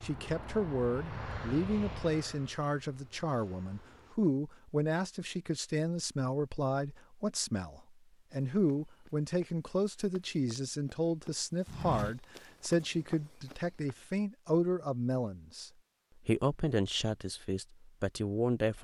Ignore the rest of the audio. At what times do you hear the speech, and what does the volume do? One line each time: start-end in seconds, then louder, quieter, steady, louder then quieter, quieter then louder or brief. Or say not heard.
0.0-18.8 steady.